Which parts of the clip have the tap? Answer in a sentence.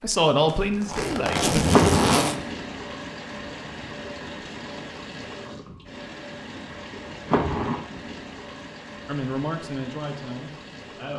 You can hear the tap from 1.6 to 11.1 s.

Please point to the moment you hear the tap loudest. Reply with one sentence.
The volume of the tap peaks at 2 seconds.